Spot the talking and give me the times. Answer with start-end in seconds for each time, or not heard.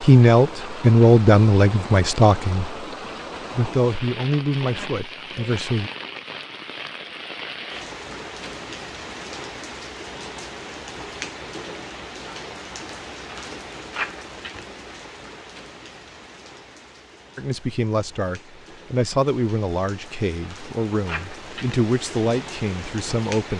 0.0-2.8, 3.5-5.9, 17.4-23.5.